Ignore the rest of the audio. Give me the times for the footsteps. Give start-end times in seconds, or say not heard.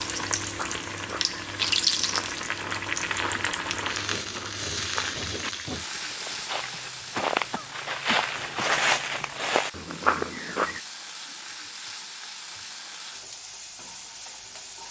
0.5-10.8.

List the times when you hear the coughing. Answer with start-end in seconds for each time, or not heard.
7.2-8.7.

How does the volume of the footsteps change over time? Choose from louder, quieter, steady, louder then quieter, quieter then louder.
louder.